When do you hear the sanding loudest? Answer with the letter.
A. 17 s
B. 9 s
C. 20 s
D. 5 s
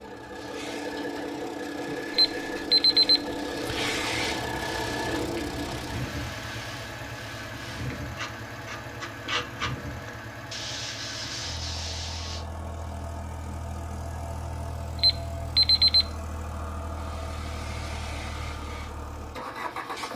B.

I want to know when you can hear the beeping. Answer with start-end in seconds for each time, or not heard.
2.1-4.0, 14.9-16.1.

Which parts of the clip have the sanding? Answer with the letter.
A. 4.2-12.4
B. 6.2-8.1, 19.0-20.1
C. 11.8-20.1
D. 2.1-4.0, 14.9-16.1
A.